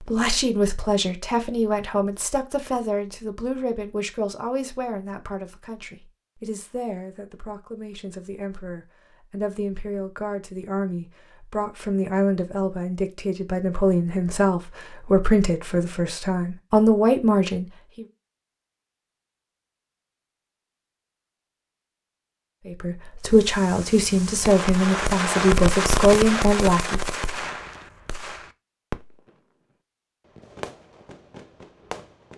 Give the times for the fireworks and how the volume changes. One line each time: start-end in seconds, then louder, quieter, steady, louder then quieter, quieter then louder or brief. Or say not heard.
23.2-29.4 louder then quieter
30.2-32.3 brief.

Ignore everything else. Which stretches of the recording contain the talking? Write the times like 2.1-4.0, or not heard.
0.0-18.1, 22.6-27.0.